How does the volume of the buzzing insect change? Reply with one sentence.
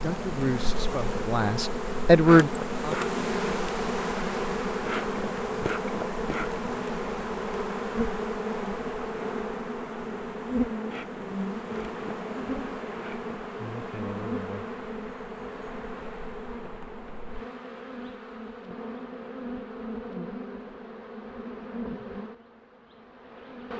The loudness of the buzzing insect goes down.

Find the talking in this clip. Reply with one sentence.
You can hear the talking from 0.0 to 3.0 s.